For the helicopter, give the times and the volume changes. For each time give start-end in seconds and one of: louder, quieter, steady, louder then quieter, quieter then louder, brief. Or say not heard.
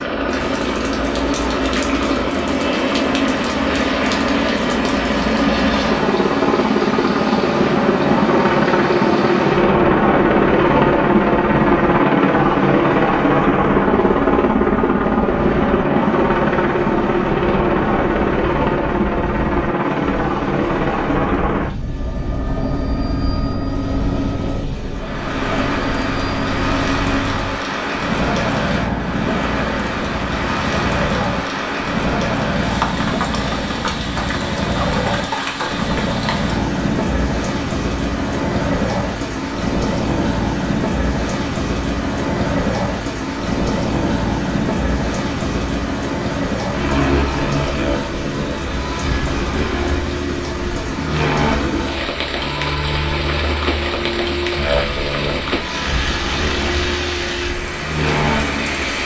0.0-59.0 quieter.